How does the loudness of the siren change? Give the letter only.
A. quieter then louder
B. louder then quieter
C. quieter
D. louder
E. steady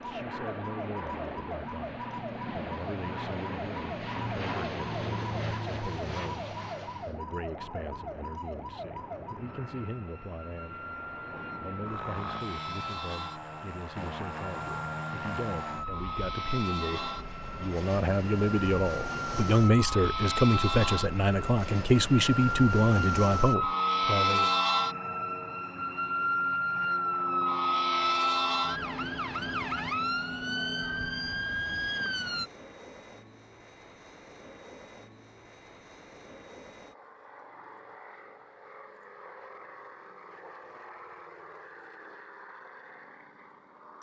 D.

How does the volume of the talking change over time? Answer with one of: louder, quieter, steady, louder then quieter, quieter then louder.
louder.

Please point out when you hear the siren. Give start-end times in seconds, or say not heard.
0.0-32.5.